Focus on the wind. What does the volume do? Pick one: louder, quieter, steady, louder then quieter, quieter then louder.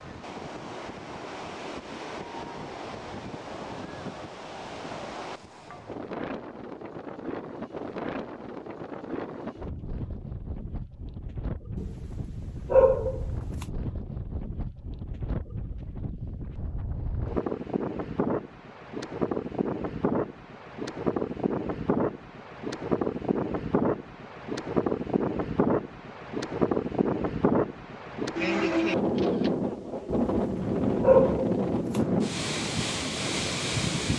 louder.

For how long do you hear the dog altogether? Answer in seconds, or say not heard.
4 s.